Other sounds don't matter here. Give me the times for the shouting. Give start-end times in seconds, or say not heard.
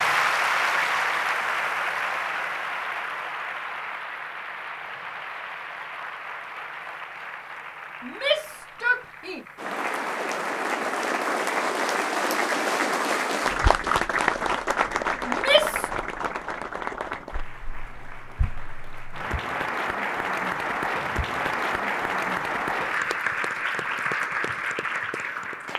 8.0-9.4, 15.2-15.9.